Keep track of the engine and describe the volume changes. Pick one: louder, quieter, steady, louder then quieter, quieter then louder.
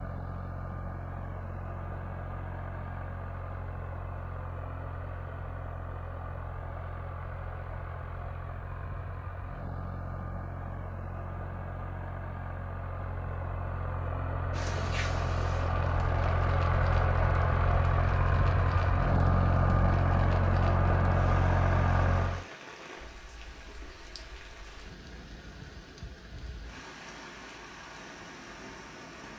louder.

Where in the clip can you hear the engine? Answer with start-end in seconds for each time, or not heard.
0.0-22.4.